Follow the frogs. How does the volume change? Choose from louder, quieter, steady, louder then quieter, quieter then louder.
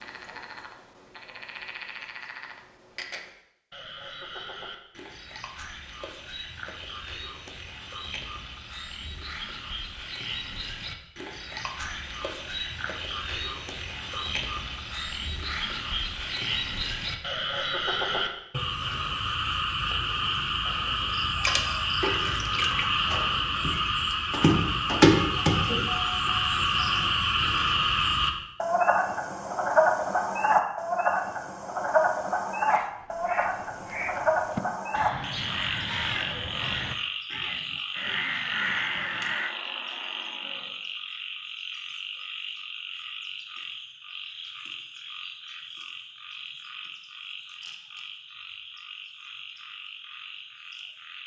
louder then quieter.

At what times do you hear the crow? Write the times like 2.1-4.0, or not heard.
32.6-39.5.